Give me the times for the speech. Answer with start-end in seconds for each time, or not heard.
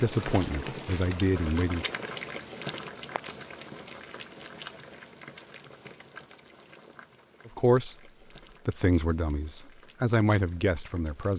0.0-1.9, 7.5-8.0, 8.7-11.3.